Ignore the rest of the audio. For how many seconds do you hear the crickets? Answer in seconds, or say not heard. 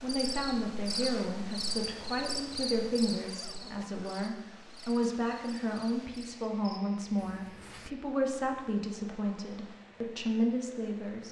7 s.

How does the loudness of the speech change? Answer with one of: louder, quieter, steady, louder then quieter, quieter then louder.
steady.